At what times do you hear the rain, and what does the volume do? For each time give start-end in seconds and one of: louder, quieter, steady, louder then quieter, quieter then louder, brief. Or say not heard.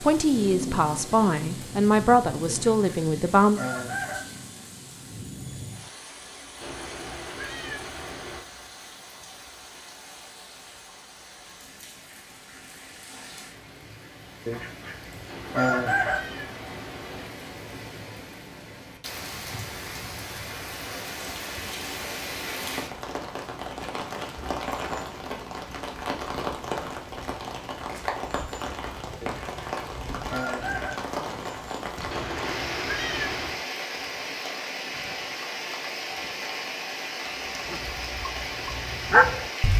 0.0-39.7 quieter then louder.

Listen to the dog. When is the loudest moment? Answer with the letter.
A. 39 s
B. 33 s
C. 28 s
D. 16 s
A.